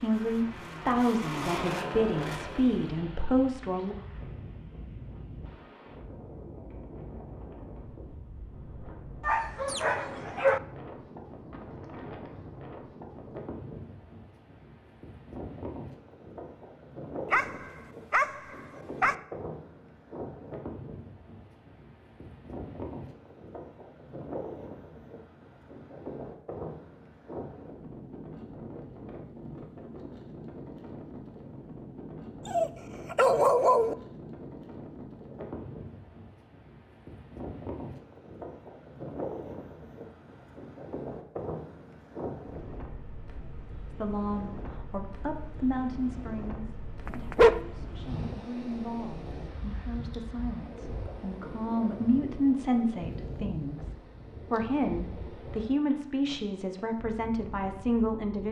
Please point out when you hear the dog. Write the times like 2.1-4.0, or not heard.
9.2-10.6, 17.3-19.1, 32.5-34.0, 47.0-47.6.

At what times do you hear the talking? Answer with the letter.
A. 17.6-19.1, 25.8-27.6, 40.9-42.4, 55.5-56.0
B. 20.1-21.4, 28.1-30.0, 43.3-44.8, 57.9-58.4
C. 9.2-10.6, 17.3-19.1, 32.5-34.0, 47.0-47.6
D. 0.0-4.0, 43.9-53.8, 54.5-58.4
D.